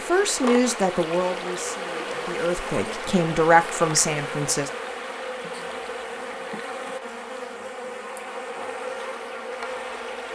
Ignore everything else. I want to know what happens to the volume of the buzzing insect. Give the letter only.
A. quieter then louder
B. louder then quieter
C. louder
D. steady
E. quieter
D.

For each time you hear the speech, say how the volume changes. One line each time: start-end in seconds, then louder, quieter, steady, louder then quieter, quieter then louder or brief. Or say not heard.
0.0-4.7 quieter then louder.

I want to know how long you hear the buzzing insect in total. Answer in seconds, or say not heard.
10 s.